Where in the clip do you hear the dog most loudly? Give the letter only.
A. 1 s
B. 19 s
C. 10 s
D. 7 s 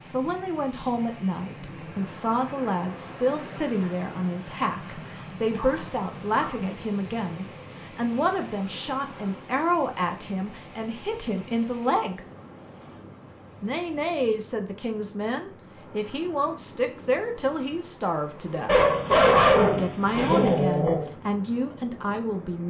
B.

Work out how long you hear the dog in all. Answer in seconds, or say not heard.
4 s.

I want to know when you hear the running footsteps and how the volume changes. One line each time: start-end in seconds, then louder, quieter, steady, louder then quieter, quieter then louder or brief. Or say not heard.
not heard.